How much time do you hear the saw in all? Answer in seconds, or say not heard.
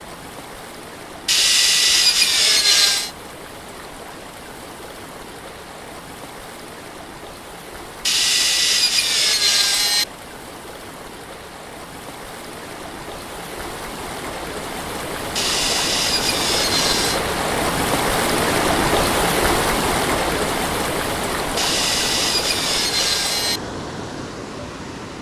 8 s.